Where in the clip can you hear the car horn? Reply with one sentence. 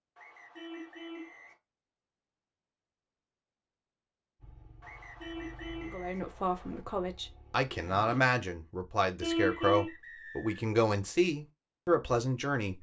You can hear the car horn from 0.6 to 1.4 s, from 5.2 to 6.0 s and from 9.2 to 9.9 s.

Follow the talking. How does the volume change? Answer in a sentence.
The volume of the talking goes up.